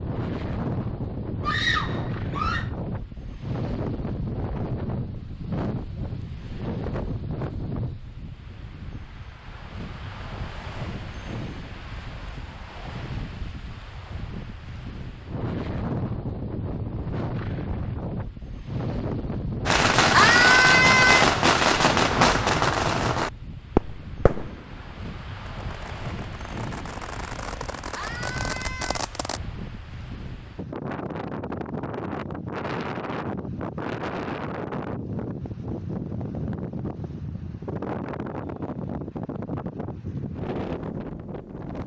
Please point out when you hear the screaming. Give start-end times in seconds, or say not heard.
1.4-2.6, 20.1-21.2, 27.9-29.1.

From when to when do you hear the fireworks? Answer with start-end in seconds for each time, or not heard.
19.6-29.4.